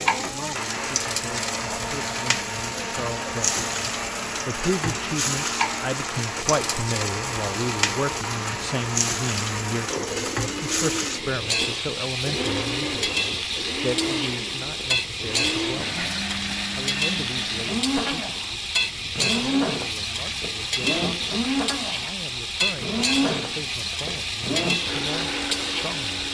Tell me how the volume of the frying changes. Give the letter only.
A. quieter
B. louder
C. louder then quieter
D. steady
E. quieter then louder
D.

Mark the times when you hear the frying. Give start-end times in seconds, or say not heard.
0.0-26.2.